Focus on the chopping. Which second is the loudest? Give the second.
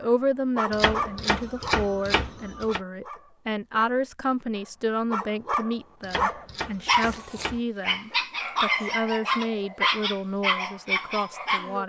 2 s.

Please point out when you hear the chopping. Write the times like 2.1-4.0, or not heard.
0.7-2.8, 6.0-7.6.